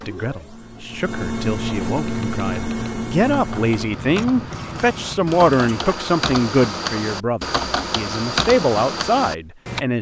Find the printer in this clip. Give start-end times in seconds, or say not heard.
0.0-6.0.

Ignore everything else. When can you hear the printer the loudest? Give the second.
2 s.